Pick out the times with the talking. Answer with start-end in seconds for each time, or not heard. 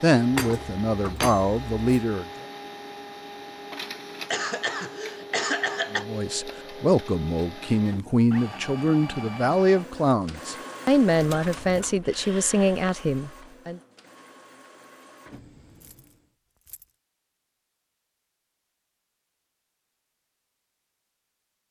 0.0-2.2, 5.9-13.8.